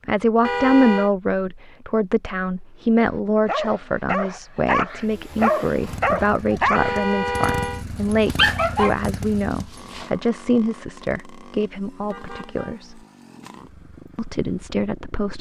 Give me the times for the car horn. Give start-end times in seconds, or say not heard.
0.4-1.1, 6.7-7.8, 12.1-12.8.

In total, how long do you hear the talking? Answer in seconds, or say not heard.
14 s.